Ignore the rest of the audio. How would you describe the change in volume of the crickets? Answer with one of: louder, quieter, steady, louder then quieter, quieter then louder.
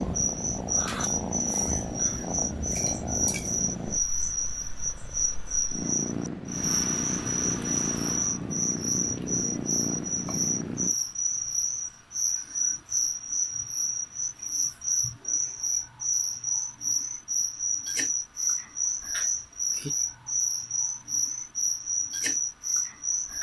steady.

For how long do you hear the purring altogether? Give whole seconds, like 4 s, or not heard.
11 s.